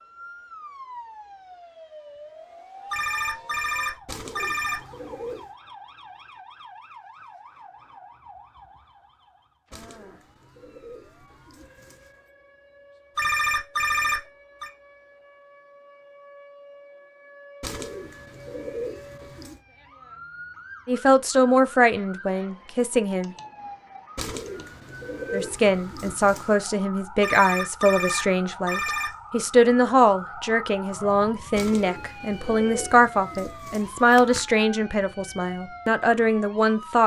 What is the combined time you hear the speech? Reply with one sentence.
You can hear the speech for 14 seconds altogether.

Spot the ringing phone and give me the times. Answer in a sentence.
You can hear the ringing phone from 2.9 to 4.8 s, from 13.2 to 14.7 s and from 27.2 to 29.1 s.